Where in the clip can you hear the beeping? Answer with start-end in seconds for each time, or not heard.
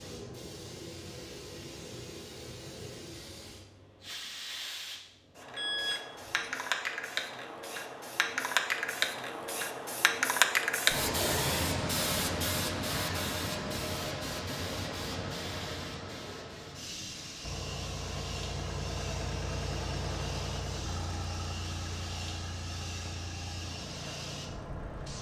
5.5-6.5.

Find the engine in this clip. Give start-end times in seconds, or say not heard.
17.4-25.1.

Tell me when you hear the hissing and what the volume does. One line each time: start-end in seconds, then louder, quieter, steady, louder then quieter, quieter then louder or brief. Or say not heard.
0.0-25.1 louder then quieter.